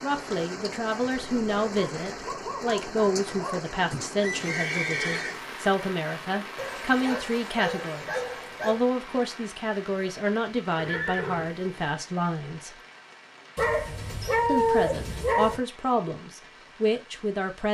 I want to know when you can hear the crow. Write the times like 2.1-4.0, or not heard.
not heard.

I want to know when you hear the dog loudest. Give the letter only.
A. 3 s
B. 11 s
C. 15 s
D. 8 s
C.